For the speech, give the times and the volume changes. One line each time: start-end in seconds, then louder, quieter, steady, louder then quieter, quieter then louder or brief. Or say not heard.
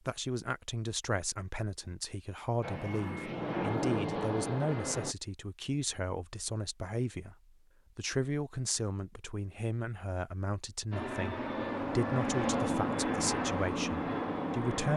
0.1-7.3 steady
8.0-14.9 steady.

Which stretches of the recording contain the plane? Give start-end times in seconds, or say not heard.
2.6-5.2, 10.9-14.9.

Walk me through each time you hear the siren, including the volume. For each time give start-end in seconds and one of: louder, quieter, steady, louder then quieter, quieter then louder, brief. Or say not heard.
not heard.